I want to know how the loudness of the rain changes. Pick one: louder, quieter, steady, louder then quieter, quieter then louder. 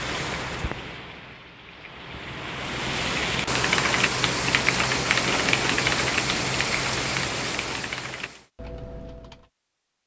louder.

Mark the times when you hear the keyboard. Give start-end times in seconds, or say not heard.
3.5-9.4.